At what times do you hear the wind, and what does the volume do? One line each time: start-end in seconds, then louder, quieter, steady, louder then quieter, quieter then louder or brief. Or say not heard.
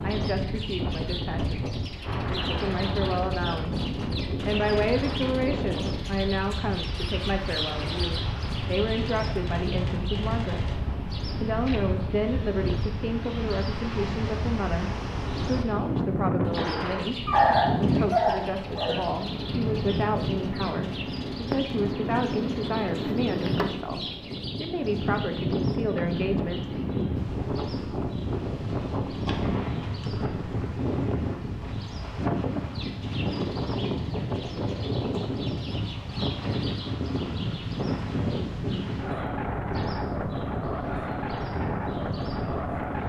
0.0-43.0 steady.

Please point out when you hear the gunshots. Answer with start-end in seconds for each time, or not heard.
8.9-10.8, 16.6-17.1, 29.2-30.1.